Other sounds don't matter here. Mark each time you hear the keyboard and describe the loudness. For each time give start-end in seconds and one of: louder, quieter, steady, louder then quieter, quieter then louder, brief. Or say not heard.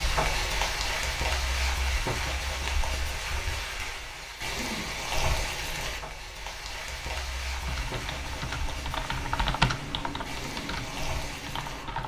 7.5-12.0 louder then quieter.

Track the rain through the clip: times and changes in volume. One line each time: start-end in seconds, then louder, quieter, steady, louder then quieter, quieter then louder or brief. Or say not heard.
0.0-12.0 quieter.